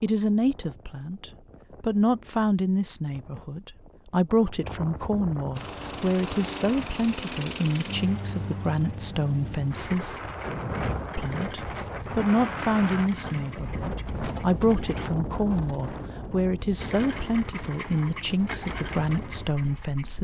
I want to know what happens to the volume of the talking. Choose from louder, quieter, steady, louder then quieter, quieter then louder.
steady.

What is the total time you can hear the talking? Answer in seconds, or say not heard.
19 s.